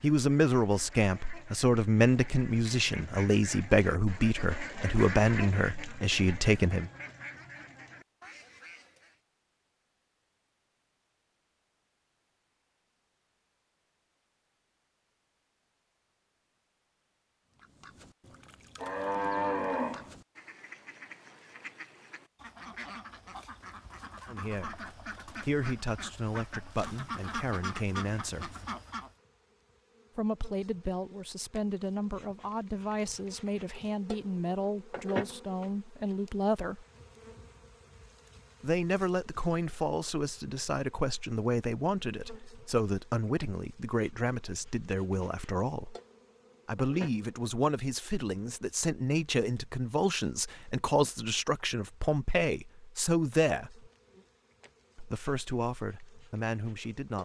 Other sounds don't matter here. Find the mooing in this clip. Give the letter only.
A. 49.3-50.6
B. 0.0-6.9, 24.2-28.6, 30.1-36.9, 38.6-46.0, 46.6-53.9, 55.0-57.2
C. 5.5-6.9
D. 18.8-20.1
D.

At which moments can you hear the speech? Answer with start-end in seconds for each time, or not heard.
0.0-6.9, 24.2-28.6, 30.1-36.9, 38.6-46.0, 46.6-53.9, 55.0-57.2.